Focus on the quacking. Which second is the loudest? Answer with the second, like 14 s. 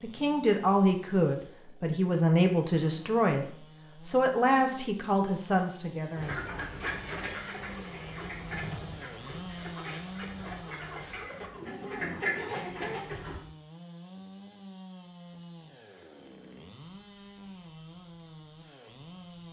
12 s.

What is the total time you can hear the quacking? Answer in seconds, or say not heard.
7 s.